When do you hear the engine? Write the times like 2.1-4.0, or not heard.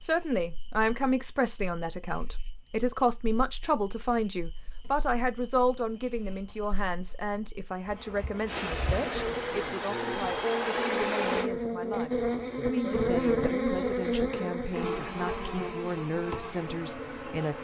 8.4-11.5.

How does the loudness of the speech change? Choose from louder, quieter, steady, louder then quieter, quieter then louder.
quieter.